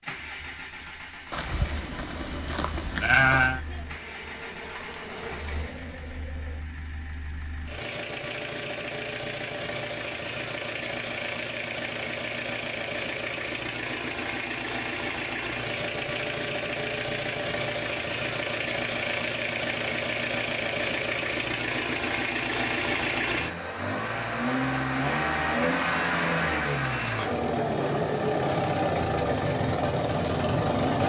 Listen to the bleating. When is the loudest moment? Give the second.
3 s.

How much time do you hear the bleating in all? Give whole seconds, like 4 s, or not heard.
2 s.